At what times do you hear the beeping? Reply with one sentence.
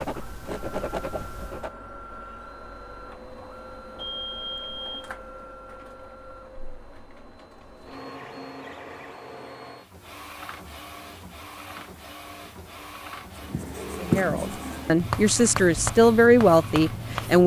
You can hear the beeping from 4.0 to 5.2 s.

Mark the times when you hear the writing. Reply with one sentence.
The writing can be heard from 0.0 to 1.7 s and from 13.3 to 17.4 s.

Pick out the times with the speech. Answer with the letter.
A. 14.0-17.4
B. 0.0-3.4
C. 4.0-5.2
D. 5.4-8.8
A.